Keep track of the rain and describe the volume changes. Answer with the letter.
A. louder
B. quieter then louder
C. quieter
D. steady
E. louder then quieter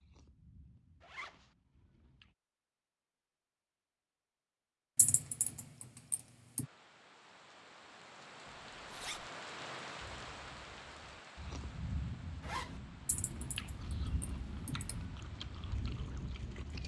E.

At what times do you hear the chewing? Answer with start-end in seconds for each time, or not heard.
0.0-2.4, 10.0-16.8.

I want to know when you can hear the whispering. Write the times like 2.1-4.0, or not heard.
not heard.